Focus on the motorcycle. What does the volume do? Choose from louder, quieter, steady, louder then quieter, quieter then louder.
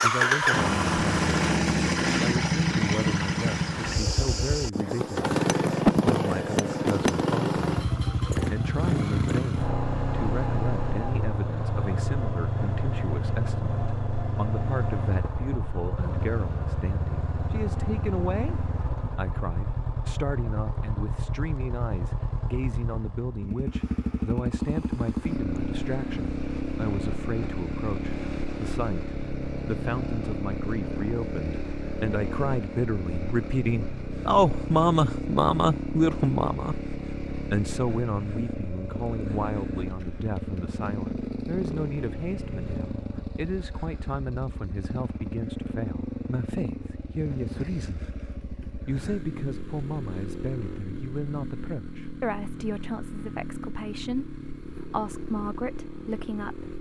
quieter.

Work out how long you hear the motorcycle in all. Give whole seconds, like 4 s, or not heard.
57 s.